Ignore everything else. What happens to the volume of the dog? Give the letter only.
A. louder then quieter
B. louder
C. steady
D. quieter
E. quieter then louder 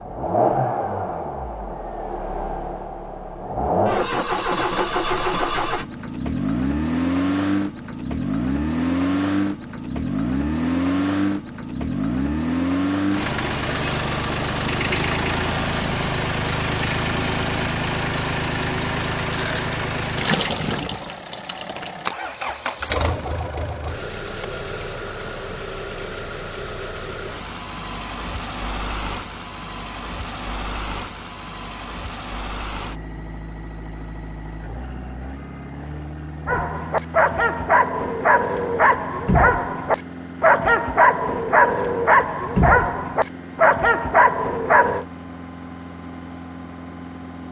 C.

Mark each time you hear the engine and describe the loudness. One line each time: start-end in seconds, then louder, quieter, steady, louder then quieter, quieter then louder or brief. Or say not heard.
0.0-47.4 quieter.